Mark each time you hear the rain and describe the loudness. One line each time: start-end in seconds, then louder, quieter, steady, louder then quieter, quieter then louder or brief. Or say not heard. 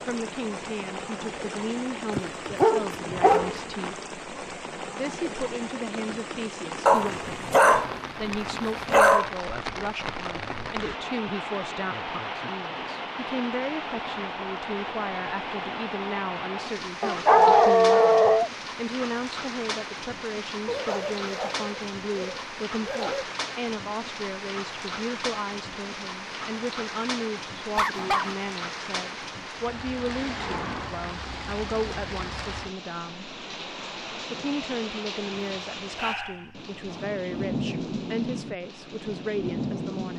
0.0-40.1 steady.